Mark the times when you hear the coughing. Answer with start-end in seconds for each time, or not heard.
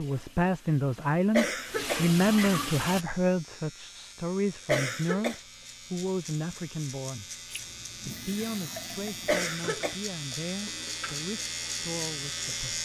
1.3-2.0, 4.7-5.4, 9.2-9.9.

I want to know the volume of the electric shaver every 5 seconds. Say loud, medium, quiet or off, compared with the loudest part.
quiet, medium, loud.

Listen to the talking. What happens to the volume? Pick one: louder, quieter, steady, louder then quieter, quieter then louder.
quieter.